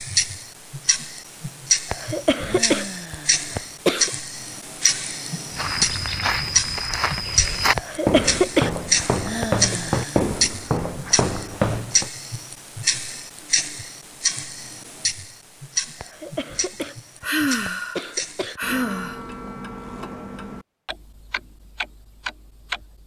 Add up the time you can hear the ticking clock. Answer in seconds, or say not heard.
23 s.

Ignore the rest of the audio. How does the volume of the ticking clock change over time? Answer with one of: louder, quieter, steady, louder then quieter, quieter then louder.
quieter.